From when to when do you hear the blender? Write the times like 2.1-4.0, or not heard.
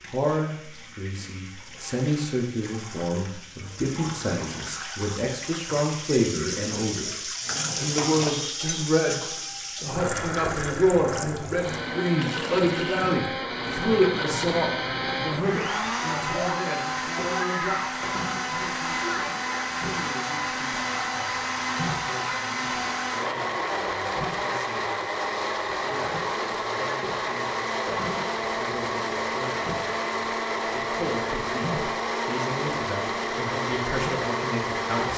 9.3-35.1.